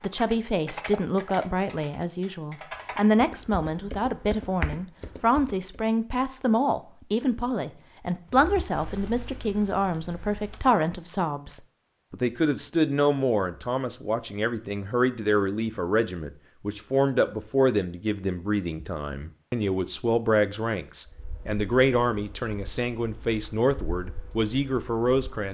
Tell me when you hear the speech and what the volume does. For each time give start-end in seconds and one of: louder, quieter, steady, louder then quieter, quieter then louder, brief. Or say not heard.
0.0-25.4 steady.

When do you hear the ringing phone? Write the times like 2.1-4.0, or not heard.
not heard.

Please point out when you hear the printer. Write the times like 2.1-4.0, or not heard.
not heard.